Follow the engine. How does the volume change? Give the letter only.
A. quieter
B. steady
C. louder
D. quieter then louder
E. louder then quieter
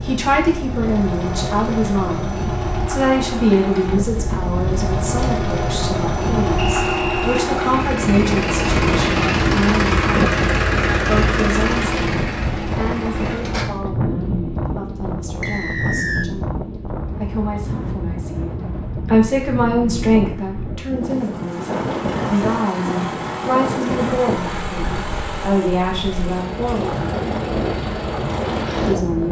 E.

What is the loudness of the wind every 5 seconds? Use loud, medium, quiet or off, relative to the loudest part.
loud, loud, loud, medium, loud, loud.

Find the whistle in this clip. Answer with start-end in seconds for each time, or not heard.
6.5-7.5, 15.4-16.2.